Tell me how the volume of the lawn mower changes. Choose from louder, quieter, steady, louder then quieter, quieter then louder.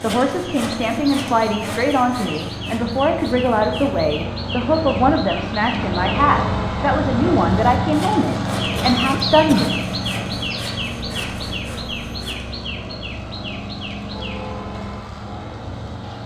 louder then quieter.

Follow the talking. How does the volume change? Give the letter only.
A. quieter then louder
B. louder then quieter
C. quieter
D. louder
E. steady
E.